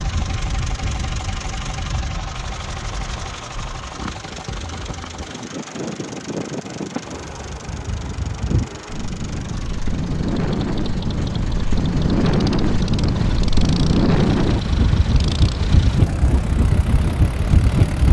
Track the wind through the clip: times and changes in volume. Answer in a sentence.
The wind can be heard from 0.0 to 18.0 s, getting louder.